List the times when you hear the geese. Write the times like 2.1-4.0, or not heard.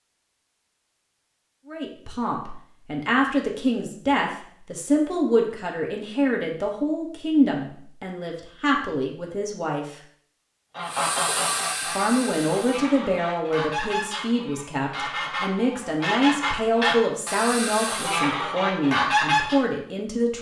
10.8-19.6.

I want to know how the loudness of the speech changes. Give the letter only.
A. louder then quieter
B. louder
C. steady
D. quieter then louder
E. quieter
C.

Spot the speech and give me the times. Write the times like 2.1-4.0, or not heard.
1.6-9.9, 11.9-20.3.